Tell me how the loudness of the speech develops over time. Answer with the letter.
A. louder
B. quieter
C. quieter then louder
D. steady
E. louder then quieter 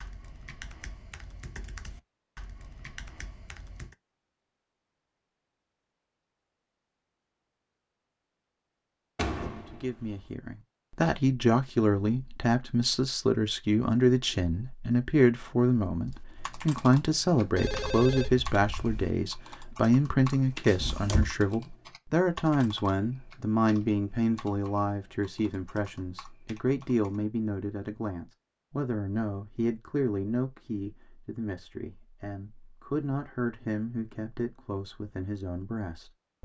B.